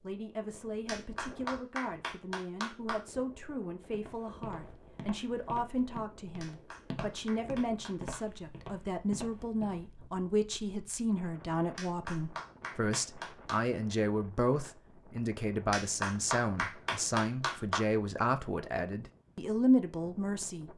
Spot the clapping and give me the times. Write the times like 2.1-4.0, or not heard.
0.8-3.0, 6.4-8.2, 11.8-13.7, 15.7-17.9.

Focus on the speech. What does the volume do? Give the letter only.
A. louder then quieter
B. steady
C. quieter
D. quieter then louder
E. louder
E.